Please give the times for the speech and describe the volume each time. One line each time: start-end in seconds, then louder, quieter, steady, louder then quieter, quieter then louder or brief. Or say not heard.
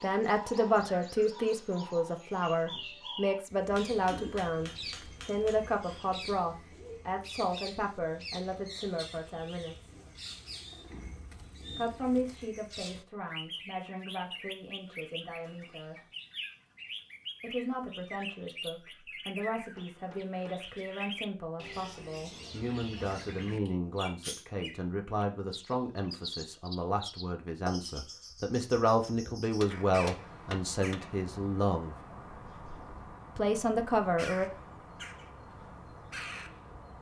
0.0-9.9 quieter
11.7-16.0 quieter
17.4-31.9 louder
33.4-34.5 brief.